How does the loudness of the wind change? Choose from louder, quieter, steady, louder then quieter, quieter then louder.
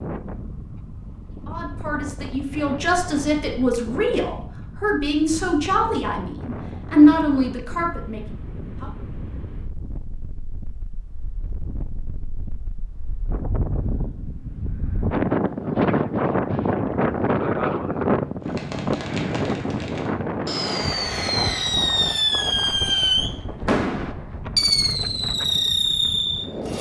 louder then quieter.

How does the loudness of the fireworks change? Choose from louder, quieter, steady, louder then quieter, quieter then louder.
louder.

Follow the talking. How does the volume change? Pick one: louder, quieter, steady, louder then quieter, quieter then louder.
louder.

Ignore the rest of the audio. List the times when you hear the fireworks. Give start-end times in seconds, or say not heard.
18.4-26.7.